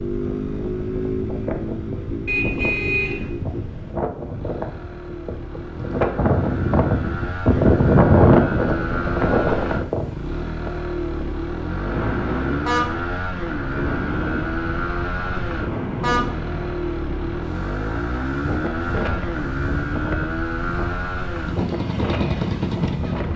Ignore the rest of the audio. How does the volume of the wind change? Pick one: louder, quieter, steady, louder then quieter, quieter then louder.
louder then quieter.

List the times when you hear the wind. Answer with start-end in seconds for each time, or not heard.
0.1-23.3.